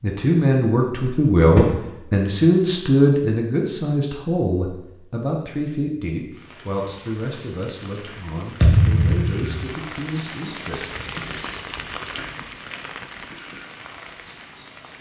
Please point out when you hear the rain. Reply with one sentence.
You can hear the rain from 6.3 to 14.9 s.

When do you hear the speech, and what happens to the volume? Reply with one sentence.
You can hear the speech from 0.0 to 11.2 s, getting quieter.